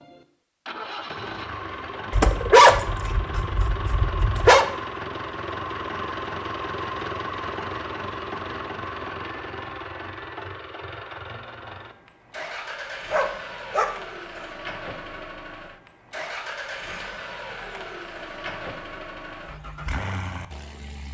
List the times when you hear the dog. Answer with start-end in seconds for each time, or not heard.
2.1-4.7, 13.1-14.4.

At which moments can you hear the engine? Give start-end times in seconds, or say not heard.
0.0-21.0.